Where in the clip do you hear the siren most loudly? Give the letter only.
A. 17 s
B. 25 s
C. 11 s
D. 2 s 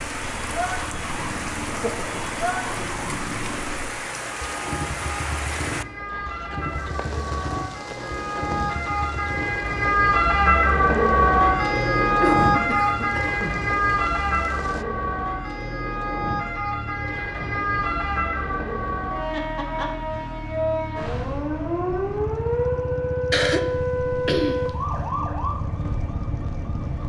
C.